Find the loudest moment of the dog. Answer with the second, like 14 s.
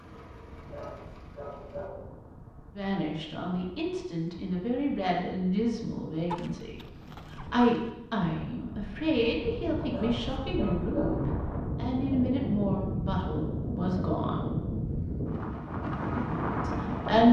11 s.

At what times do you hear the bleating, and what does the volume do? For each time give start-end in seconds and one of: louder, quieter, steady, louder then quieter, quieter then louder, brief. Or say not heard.
not heard.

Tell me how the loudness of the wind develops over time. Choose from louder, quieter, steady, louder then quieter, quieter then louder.
louder.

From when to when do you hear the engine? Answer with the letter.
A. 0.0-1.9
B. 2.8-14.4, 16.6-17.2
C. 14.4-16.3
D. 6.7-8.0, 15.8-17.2
A.